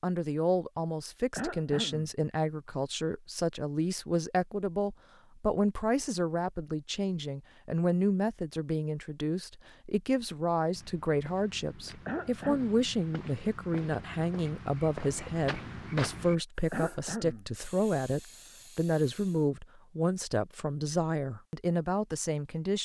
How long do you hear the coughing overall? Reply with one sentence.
You can hear the coughing for 2 seconds altogether.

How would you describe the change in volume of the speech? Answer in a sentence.
The volume of the speech stays about the same.